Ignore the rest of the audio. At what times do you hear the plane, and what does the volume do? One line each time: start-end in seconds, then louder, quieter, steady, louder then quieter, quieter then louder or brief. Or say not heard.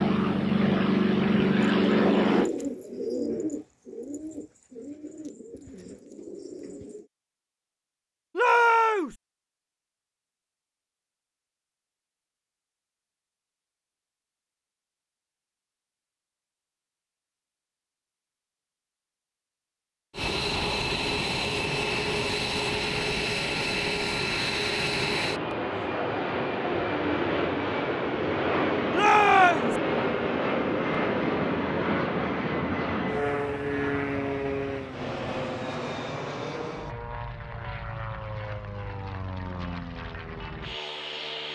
0.0-2.5 brief
20.1-41.5 quieter.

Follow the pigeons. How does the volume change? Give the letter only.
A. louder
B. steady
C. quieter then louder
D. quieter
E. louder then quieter
D.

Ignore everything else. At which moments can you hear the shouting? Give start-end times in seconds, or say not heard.
8.3-9.2, 28.9-29.8.